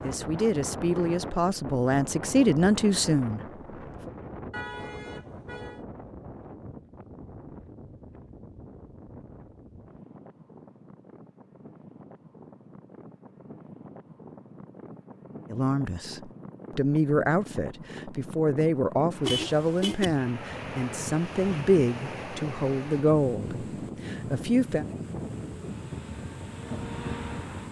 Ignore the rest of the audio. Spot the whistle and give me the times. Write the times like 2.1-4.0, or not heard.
not heard.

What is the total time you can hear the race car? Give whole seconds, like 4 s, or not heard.
2 s.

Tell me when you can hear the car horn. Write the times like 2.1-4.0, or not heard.
4.5-5.8, 19.2-20.1.